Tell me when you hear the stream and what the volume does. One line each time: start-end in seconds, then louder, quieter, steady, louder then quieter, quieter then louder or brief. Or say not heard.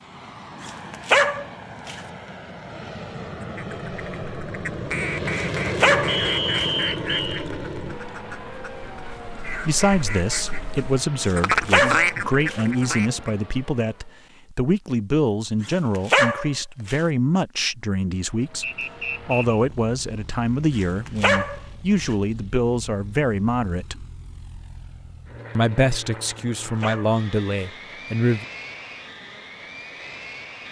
not heard.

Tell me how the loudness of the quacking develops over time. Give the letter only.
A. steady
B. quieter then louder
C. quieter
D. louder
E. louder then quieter
B.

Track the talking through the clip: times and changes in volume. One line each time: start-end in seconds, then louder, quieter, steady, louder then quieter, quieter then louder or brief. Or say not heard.
9.6-24.1 steady
25.6-28.4 brief.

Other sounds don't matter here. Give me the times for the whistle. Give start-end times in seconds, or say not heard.
6.0-7.5, 18.6-19.6.